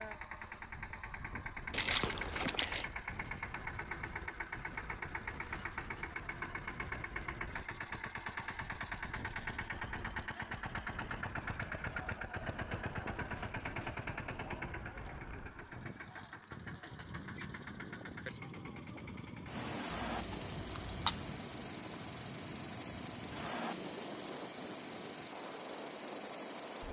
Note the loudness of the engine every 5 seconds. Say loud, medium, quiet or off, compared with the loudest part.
loud, loud, loud, medium, loud, medium.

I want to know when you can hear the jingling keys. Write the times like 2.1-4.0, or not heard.
1.7-2.9, 19.9-21.4.